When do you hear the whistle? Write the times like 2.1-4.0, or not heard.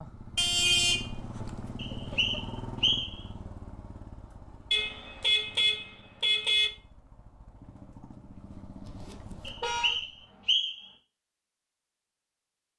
1.8-3.2, 9.4-10.9.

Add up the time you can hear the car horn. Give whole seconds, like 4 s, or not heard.
4 s.